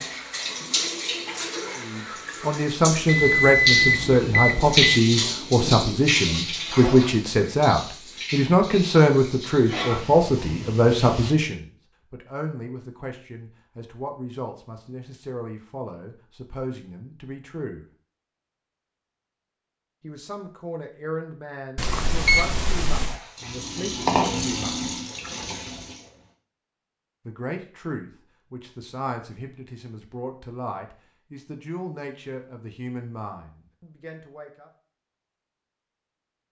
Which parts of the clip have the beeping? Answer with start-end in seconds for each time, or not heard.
3.0-5.0, 21.8-23.2.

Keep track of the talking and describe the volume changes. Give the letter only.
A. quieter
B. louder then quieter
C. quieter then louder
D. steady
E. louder
A.